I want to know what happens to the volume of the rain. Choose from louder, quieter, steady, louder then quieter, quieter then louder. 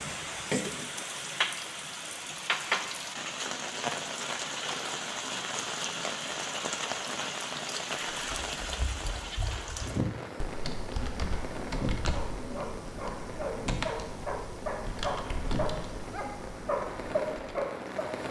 quieter.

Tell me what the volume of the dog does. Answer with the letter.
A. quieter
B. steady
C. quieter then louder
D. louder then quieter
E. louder
E.